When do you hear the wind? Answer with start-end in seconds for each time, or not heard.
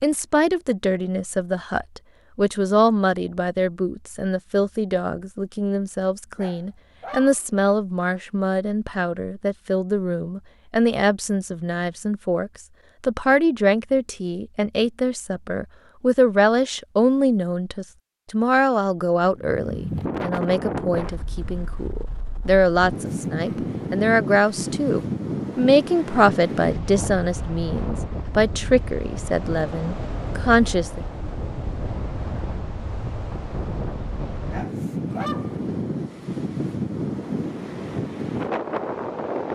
19.3-39.5.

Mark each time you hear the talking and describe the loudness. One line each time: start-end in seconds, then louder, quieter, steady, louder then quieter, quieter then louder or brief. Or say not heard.
0.0-31.0 steady.